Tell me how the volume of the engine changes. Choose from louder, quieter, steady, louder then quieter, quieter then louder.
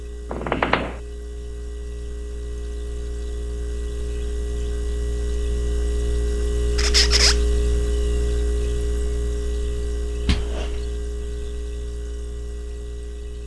louder then quieter.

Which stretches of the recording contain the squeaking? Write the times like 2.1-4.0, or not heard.
0.3-1.0, 6.8-7.4, 10.2-10.8.